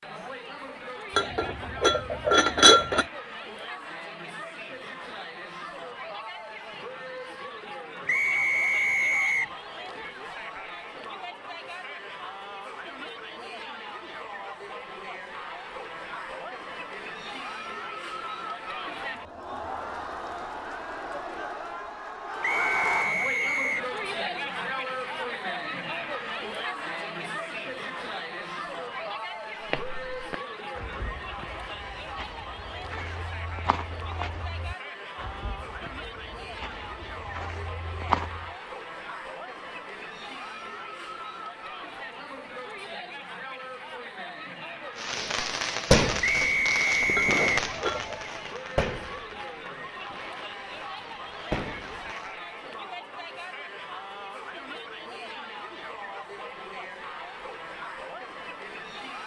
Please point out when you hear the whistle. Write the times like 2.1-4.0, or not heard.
8.1-9.6, 22.4-23.9, 46.2-47.5.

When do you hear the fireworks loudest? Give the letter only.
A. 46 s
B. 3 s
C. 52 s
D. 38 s
A.